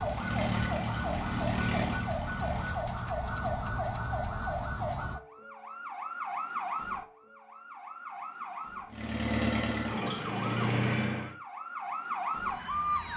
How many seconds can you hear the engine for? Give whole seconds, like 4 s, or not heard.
5 s.